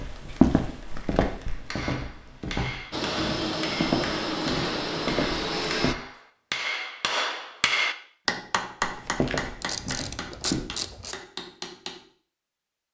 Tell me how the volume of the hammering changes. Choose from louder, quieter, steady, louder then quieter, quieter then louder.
louder then quieter.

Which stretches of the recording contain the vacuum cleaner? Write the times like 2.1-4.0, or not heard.
2.9-6.0.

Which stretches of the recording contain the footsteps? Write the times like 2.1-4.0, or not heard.
0.0-6.0, 8.8-10.6.